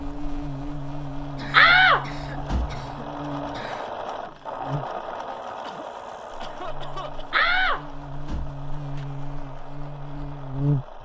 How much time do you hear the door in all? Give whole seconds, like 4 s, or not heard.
3 s.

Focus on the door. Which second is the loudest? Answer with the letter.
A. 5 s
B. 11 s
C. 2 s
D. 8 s
C.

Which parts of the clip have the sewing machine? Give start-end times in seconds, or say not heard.
0.0-10.9.